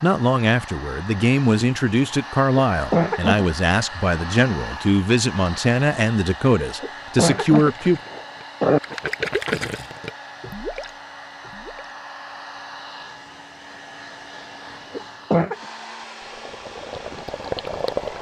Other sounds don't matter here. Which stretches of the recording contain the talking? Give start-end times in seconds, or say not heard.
0.0-8.0.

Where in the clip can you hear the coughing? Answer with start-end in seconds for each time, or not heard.
2.5-3.5, 6.8-8.8, 14.9-15.6.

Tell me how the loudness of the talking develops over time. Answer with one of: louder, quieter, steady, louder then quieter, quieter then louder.
steady.